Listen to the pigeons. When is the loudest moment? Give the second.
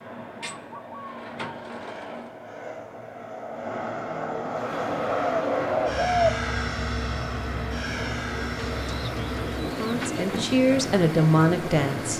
6 s.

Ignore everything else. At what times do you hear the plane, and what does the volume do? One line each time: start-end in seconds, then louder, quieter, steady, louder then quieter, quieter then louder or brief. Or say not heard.
0.0-12.1 louder then quieter.